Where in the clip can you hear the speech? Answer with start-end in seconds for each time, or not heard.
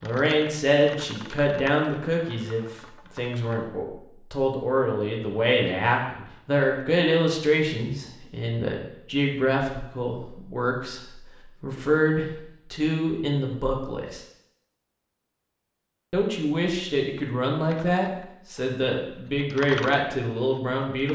0.0-11.0, 11.6-14.2, 16.1-21.1.